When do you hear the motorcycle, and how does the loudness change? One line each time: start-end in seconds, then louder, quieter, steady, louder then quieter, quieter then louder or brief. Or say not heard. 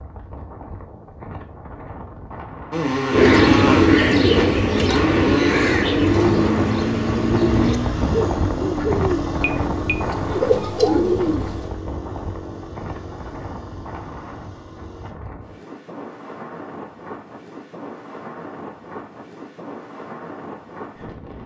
2.7-15.2 quieter.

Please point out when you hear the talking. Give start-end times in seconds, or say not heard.
not heard.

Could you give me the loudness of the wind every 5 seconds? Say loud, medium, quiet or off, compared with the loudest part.
medium, loud, medium, medium, medium.